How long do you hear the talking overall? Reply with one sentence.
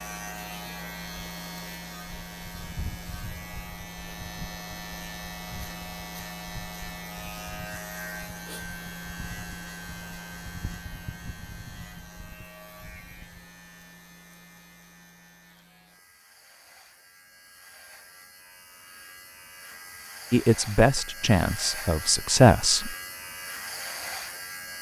You can hear the talking for 3 seconds altogether.